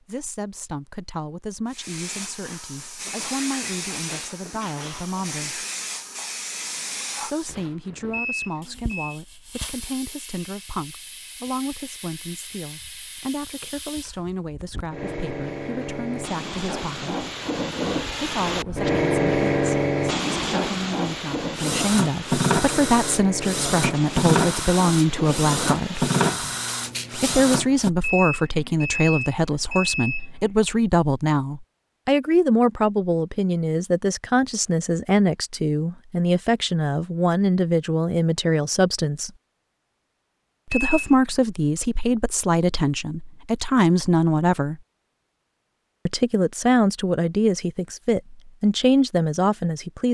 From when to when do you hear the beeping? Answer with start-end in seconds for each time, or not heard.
8.1-9.2, 28.0-30.3, 40.7-41.1.